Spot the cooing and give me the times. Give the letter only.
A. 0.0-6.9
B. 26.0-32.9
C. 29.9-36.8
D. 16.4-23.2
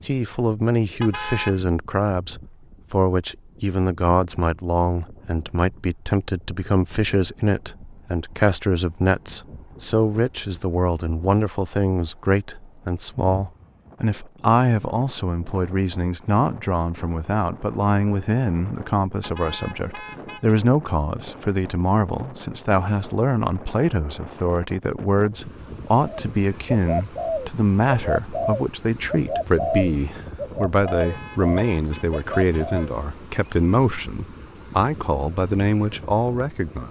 B.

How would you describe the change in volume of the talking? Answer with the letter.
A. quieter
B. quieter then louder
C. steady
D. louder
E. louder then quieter
C.